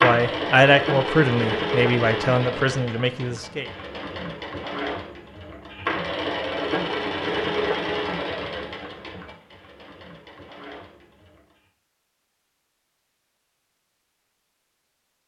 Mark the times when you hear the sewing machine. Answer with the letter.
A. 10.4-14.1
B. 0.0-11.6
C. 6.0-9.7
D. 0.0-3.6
B.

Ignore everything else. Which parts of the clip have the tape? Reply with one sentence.
The tape can't be heard in this clip.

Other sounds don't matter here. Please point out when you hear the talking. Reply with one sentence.
The talking can be heard from 0.0 to 3.6 s.